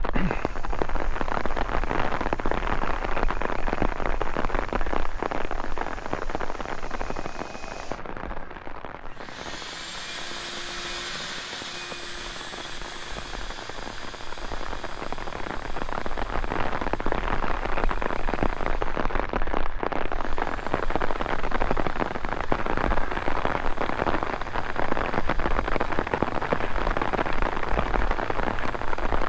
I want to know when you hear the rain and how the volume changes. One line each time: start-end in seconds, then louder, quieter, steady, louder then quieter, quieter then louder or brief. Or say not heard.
0.0-29.2 quieter then louder.